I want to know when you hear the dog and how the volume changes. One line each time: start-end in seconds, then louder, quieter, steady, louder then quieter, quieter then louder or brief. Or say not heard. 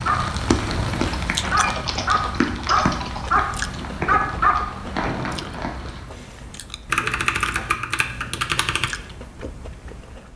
0.0-5.6 louder.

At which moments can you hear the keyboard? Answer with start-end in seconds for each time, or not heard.
0.9-3.4, 6.8-8.9.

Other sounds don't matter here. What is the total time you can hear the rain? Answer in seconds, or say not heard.
6 s.